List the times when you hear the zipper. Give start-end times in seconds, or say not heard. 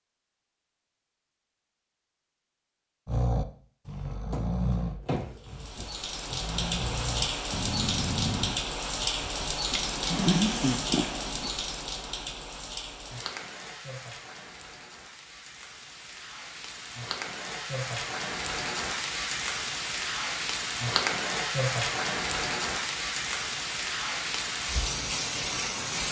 not heard.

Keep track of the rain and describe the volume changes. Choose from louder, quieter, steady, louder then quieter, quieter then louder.
quieter then louder.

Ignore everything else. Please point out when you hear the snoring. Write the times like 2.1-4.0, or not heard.
3.0-11.5.